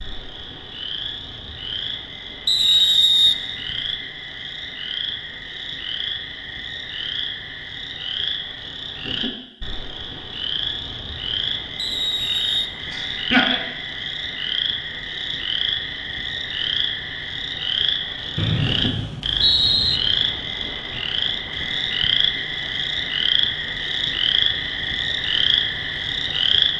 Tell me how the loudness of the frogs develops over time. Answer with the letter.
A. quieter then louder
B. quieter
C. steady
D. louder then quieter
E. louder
E.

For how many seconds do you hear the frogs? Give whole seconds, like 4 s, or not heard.
27 s.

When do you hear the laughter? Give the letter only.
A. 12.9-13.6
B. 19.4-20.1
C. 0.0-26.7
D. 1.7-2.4
A.